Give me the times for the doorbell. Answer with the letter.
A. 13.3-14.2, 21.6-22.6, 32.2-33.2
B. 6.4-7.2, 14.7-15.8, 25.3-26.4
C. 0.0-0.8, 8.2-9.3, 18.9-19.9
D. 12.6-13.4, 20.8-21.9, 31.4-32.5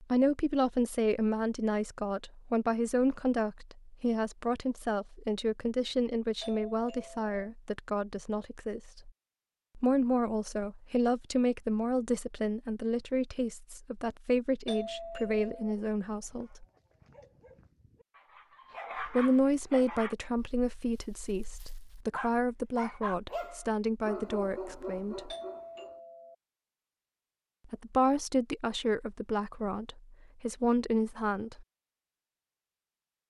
B.